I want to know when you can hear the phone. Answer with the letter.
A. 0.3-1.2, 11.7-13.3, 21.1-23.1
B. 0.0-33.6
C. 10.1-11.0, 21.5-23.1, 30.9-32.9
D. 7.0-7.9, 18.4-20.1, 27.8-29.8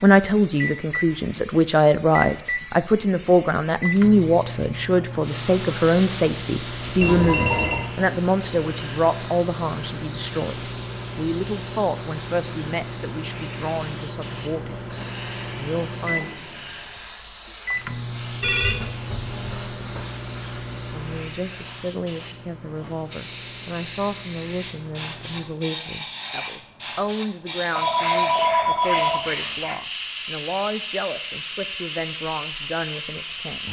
D.